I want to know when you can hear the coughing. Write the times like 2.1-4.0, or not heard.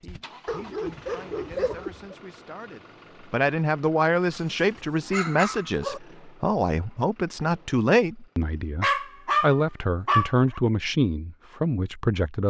not heard.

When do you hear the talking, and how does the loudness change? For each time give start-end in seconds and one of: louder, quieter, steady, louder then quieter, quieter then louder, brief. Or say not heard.
0.0-12.4 louder.